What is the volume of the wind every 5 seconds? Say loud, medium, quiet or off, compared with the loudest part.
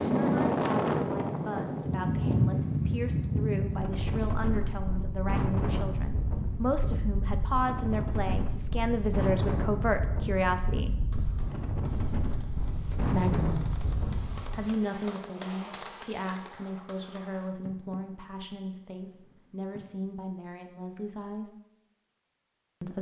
loud, medium, medium, off, off.